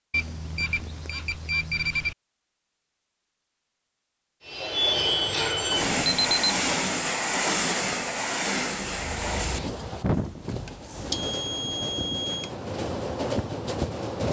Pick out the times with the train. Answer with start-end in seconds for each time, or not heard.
4.5-14.2.